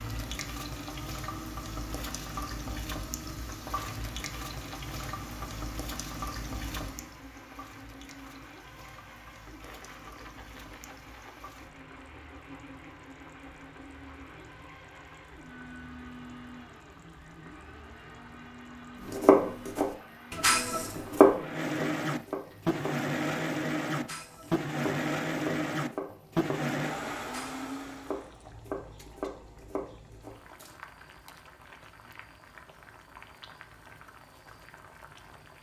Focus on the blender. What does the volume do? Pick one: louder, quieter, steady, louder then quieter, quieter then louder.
louder.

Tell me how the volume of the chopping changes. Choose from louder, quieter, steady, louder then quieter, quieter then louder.
quieter.